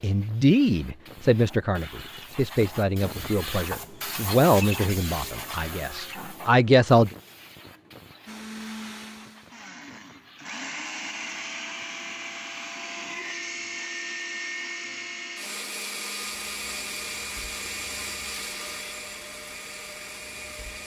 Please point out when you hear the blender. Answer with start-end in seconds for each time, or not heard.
8.2-20.8.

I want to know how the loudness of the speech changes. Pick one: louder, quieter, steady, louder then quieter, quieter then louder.
quieter then louder.